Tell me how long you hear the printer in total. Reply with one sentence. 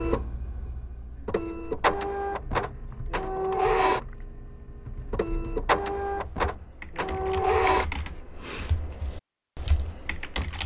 The printer can be heard for 8 seconds in total.